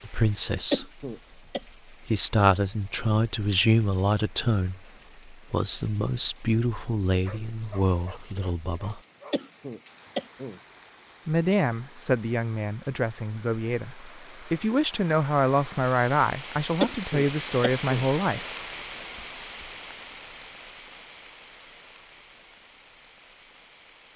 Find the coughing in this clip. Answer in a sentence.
The coughing can be heard from 0.7 to 1.6 s, from 9.3 to 10.6 s and from 16.8 to 18.1 s.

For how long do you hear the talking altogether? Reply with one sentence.
The talking can be heard for 15 seconds in total.